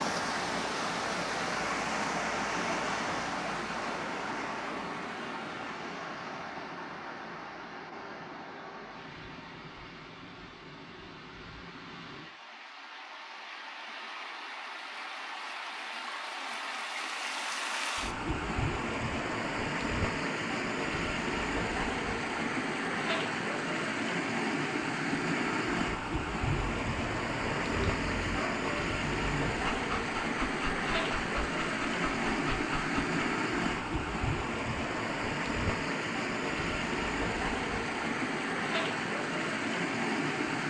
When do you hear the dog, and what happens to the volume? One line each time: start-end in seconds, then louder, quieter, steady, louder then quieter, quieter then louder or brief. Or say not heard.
26.4-33.2 steady.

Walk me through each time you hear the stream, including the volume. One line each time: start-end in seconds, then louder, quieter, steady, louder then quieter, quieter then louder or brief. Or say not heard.
0.0-40.6 quieter then louder.